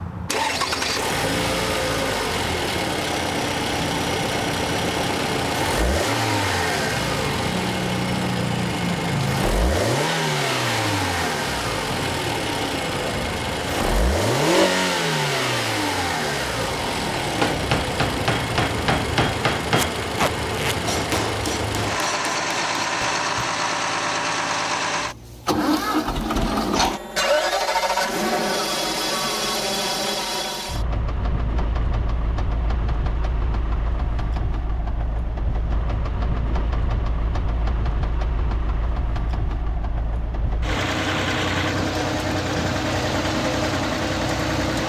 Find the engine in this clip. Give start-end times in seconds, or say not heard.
0.0-44.8.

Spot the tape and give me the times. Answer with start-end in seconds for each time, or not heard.
19.8-21.2.